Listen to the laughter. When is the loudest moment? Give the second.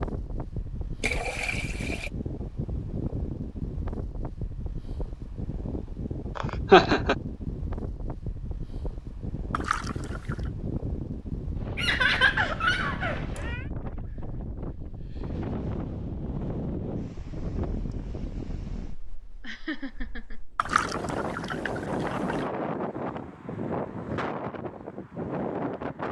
7 s.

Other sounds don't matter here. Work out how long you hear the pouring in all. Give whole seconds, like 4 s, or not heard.
4 s.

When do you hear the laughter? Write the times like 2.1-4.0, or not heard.
6.3-7.2, 11.8-13.7, 19.4-20.4.